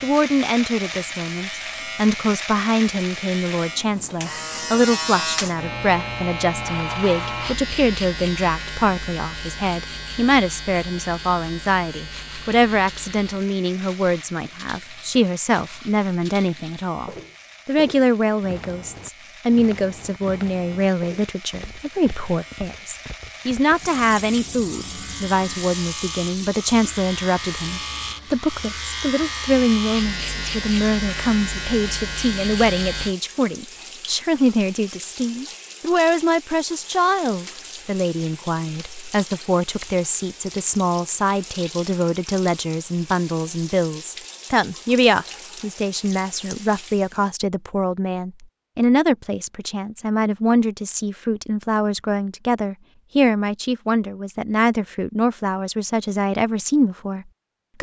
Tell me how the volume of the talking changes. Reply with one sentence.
The loudness of the talking stays about the same.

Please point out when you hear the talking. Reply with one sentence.
You can hear the talking from 0.0 to 57.7 s.